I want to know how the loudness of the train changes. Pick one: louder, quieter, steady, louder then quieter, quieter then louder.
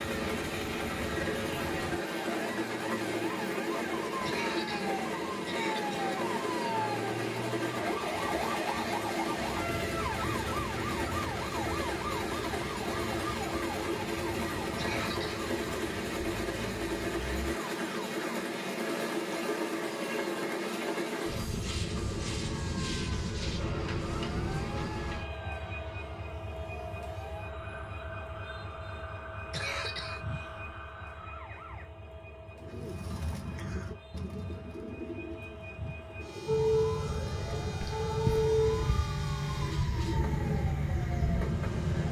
quieter.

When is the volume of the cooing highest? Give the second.
38 s.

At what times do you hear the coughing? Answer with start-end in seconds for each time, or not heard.
4.2-6.2, 14.7-15.4, 29.4-30.6.